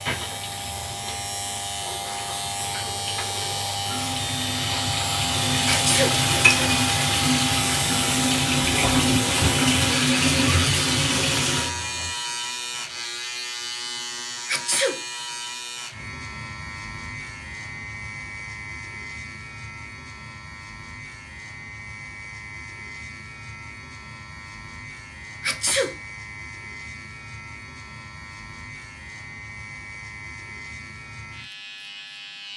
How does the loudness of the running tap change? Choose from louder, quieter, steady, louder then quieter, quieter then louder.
louder.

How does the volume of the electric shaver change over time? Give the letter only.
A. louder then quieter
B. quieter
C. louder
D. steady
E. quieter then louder
B.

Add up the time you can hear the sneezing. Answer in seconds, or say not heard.
2 s.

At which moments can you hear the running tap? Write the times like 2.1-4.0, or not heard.
0.0-12.1.